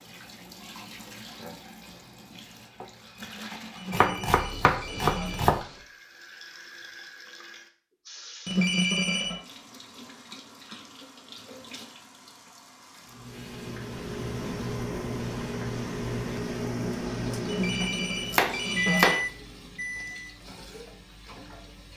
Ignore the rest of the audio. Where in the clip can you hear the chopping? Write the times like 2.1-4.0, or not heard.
3.9-5.7, 17.8-19.2.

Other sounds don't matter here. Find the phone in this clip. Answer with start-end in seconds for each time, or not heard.
3.8-5.4, 8.4-9.4, 17.4-19.1.